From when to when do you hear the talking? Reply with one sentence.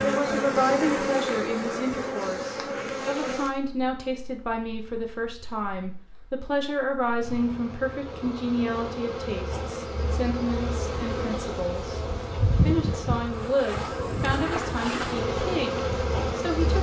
The talking can be heard from 0.0 to 16.7 s.